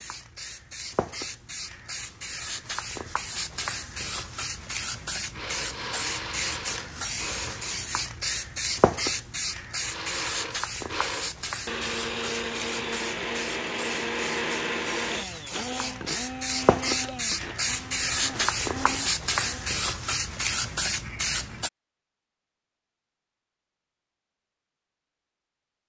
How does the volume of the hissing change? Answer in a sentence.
The volume of the hissing goes up.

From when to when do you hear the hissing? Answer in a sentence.
The hissing can be heard from 0.0 to 21.7 s.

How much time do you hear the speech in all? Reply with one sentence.
The speech can't be heard in this clip.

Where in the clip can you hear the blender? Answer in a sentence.
You can hear the blender from 5.3 to 7.8 s and from 9.8 to 19.8 s.